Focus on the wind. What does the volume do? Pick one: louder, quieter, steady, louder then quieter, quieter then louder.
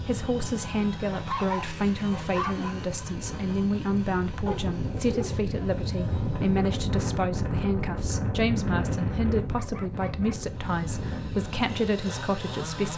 louder then quieter.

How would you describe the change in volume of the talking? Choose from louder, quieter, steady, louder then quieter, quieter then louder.
steady.